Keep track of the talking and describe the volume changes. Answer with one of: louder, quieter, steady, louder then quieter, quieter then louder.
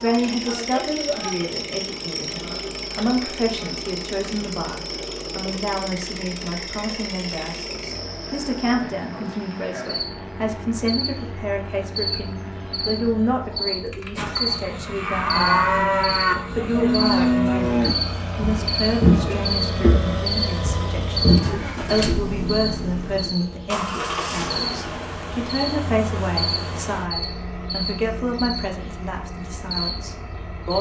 steady.